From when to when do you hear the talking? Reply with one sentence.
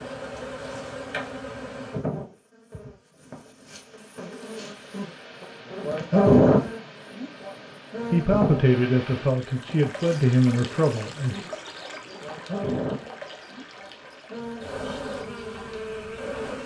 The talking can be heard from 8.1 to 11.4 s.